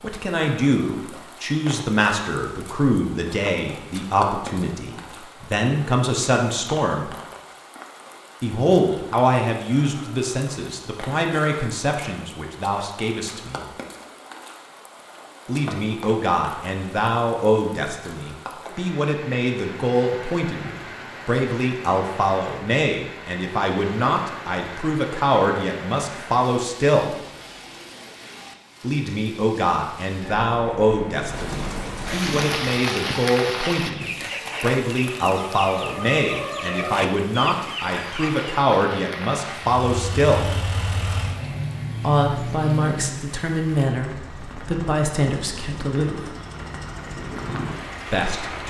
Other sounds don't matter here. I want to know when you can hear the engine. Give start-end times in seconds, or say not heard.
39.6-48.6.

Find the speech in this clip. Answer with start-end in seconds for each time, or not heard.
0.0-7.1, 8.4-13.7, 15.4-27.1, 28.8-40.5, 42.0-46.3, 48.1-48.6.